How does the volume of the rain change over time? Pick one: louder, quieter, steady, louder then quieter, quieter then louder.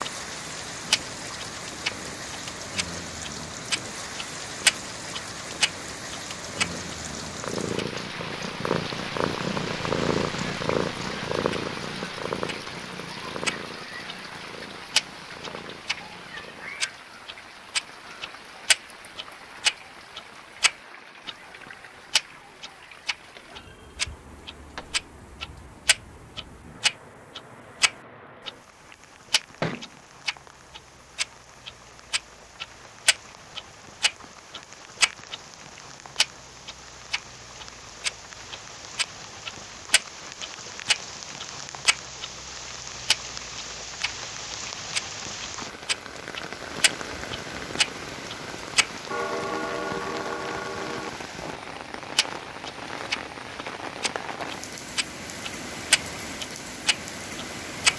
quieter then louder.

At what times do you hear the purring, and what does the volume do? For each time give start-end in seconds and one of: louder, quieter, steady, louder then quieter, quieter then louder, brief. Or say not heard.
0.0-16.8 louder then quieter.